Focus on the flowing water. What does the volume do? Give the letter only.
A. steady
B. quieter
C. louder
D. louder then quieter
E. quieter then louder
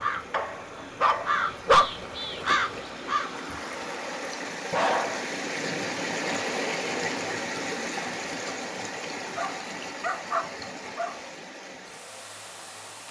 D.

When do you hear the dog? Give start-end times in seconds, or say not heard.
0.3-1.9, 4.7-6.4, 9.3-11.2.